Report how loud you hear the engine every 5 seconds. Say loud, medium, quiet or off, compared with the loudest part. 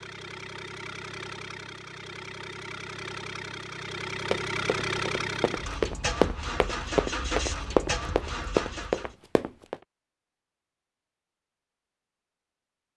loud, loud, off.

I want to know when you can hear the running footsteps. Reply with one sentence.
You can hear the running footsteps from 4.3 to 9.8 s.